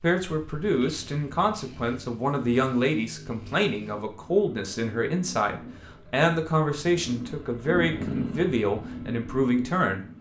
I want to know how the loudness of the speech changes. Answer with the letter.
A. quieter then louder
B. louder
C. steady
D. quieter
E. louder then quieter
C.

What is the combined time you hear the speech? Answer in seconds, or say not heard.
10 s.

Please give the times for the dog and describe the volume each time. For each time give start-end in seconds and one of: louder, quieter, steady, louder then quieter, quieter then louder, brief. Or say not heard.
not heard.